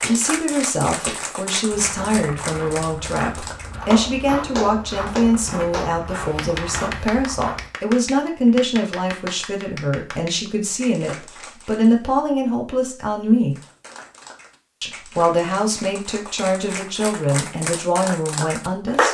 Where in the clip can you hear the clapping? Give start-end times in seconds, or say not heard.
0.0-11.9, 13.6-19.0.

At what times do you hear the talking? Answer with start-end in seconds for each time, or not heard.
0.0-13.6, 14.8-19.0.